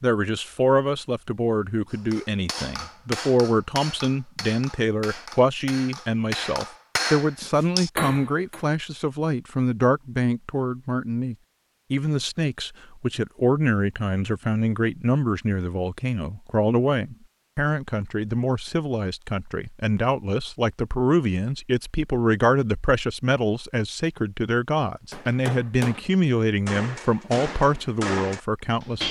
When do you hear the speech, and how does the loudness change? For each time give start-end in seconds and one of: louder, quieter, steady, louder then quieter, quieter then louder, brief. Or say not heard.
0.0-29.0 steady.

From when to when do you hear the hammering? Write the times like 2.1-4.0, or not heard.
1.9-8.6, 25.1-29.0.